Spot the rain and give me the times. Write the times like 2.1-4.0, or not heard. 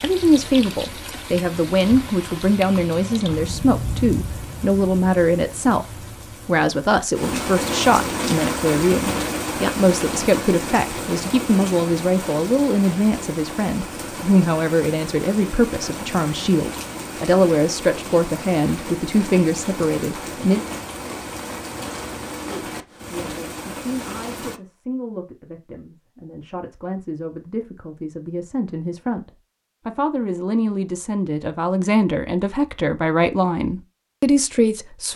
0.0-24.6.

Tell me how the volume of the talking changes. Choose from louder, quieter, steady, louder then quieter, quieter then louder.
quieter then louder.